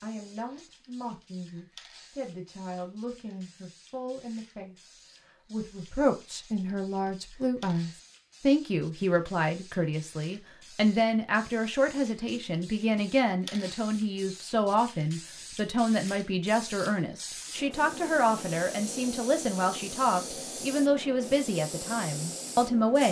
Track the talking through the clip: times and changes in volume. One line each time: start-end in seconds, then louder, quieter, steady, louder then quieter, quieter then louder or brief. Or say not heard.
0.0-23.0 louder.